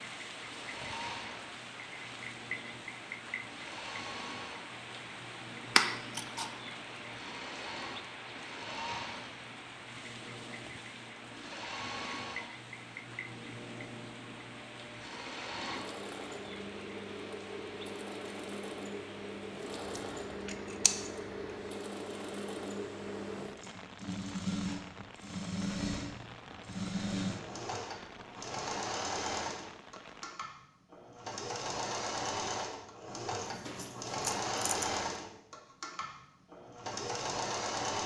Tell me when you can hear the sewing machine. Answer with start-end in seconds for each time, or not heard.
0.0-38.0.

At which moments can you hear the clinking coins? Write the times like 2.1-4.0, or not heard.
not heard.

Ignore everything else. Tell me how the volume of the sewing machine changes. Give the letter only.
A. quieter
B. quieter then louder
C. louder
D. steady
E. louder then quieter
C.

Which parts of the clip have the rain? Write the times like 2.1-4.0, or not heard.
0.0-30.4.